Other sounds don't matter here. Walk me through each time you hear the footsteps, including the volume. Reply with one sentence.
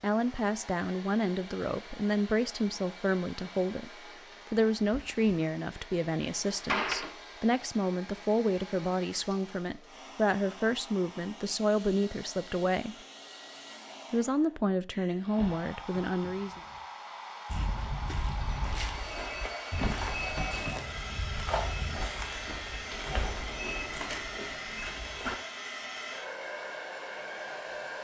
You can hear the footsteps from 17.4 to 25.4 s, at a steady volume.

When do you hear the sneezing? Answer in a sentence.
You can't hear the sneezing here.